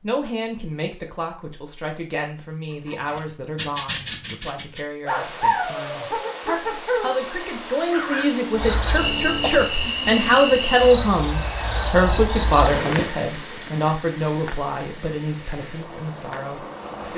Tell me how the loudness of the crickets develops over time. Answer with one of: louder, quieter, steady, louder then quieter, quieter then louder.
quieter.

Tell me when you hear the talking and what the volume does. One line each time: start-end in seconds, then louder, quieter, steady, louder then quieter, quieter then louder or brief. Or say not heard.
0.0-17.1 louder then quieter.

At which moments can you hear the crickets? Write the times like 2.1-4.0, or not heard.
8.6-17.1.